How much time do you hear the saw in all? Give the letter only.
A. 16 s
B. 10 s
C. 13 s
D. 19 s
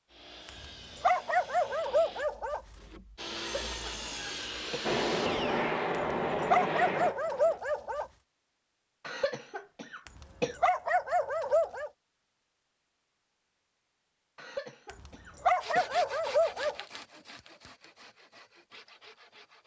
B.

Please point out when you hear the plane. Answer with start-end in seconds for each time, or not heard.
4.8-7.6.